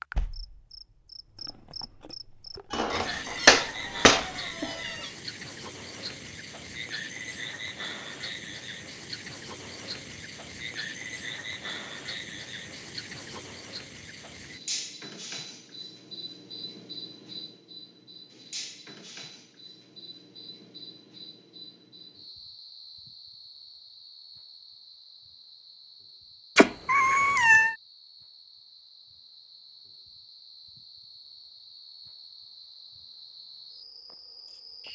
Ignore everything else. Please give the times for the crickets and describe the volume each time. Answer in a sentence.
The crickets can be heard from 0.0 to 34.8 s, getting quieter.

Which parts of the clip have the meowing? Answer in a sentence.
You can hear the meowing from 2.7 to 5.1 s and from 26.6 to 27.8 s.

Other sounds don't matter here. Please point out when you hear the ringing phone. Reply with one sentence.
The ringing phone can't be heard in this clip.